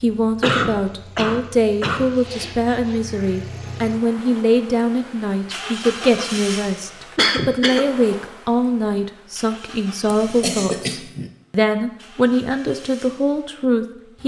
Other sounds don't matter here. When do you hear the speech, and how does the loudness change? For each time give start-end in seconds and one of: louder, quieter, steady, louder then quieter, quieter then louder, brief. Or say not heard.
0.0-14.2 steady.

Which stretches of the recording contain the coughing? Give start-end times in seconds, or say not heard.
0.4-2.1, 7.2-7.8, 10.1-11.3.